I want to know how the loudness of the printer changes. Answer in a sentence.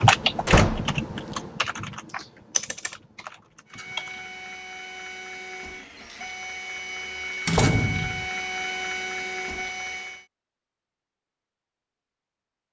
The volume of the printer goes up.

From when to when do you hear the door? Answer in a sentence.
You can hear the door from 0.5 to 0.9 s and from 7.5 to 8.2 s.